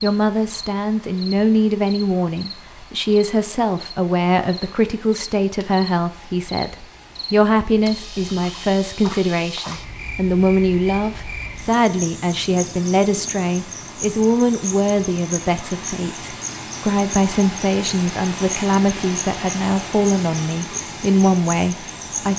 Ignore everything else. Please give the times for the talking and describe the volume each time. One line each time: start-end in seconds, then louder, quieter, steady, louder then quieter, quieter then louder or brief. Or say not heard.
0.0-22.3 steady.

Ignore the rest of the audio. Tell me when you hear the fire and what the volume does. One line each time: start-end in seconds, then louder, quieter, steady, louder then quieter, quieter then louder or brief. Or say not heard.
not heard.